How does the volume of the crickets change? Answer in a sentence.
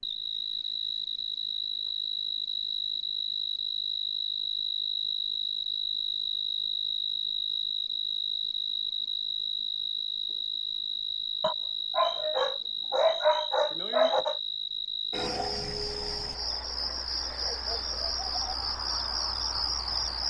The volume of the crickets stays about the same.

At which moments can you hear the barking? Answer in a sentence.
You can hear the barking from 11.4 to 14.4 s.